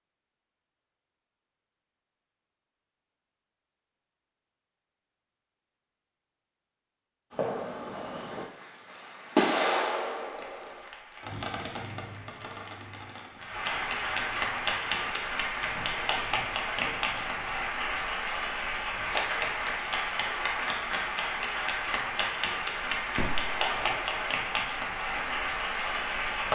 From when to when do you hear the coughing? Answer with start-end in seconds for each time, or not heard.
not heard.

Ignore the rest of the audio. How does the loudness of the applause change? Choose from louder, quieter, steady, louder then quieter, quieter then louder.
louder.